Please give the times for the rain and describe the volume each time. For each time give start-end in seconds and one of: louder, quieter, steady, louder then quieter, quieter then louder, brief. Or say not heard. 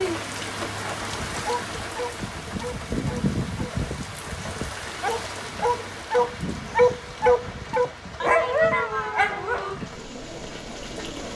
0.0-11.3 quieter.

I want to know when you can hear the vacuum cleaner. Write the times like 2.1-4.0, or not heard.
not heard.